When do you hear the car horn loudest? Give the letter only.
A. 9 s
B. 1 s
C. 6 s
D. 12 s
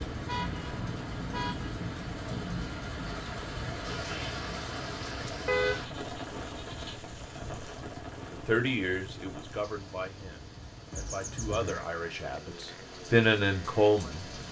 C.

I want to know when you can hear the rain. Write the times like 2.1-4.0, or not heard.
0.0-14.4.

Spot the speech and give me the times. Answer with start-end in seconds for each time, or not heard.
8.3-14.2.